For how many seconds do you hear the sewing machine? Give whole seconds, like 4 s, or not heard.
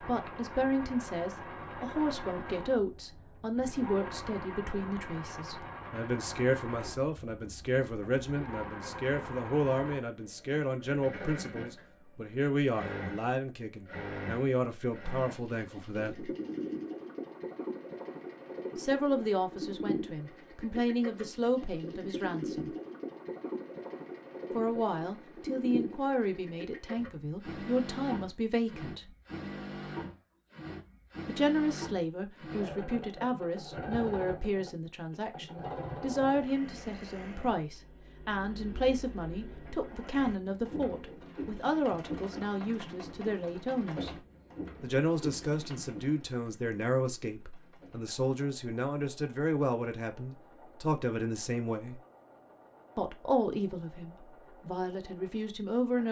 56 s.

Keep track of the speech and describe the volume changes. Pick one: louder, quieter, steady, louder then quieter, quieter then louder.
steady.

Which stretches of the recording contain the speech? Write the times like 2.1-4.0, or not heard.
0.1-16.3, 18.8-22.7, 24.5-29.1, 31.2-44.1, 44.8-52.0, 53.0-56.0.